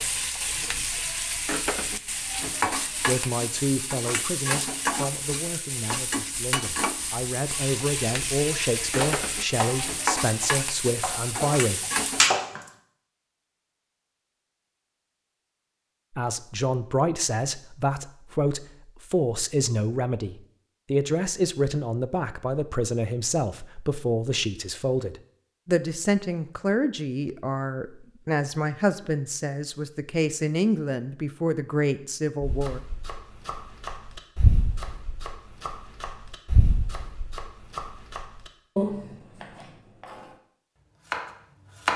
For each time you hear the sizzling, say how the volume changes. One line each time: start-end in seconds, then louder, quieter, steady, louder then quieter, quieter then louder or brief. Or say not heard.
0.0-12.3 steady.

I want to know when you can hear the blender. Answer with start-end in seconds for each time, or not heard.
not heard.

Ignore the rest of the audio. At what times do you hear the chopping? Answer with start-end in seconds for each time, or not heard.
9.0-12.6, 32.4-40.4, 41.0-41.9.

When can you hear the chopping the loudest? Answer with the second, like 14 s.
12 s.